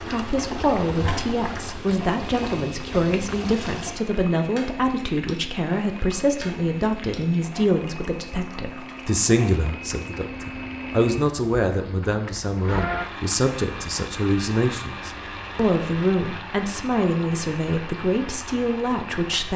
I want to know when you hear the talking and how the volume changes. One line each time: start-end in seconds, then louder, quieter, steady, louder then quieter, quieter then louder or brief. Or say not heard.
0.0-19.5 steady.